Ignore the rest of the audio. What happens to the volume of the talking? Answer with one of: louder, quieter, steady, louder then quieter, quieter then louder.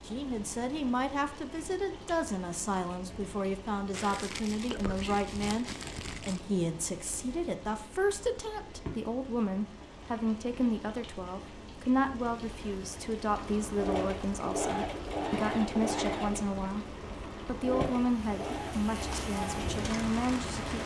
steady.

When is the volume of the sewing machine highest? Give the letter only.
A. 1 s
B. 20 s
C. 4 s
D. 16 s
D.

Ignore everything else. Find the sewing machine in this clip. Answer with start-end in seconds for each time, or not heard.
13.2-20.8.